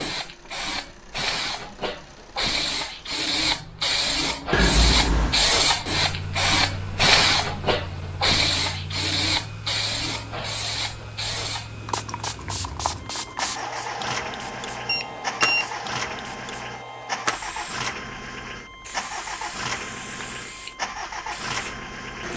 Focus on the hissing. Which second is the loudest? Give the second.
7 s.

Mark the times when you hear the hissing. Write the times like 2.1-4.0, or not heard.
0.0-22.3.